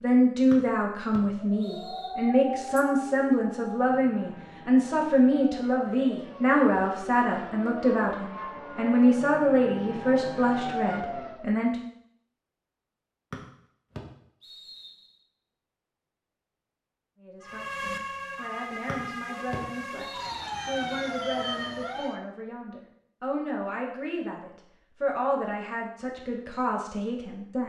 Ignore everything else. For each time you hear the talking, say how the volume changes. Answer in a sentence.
You can hear the talking from 0.0 to 11.8 s, at a steady volume; and from 17.2 to 27.6 s, getting louder.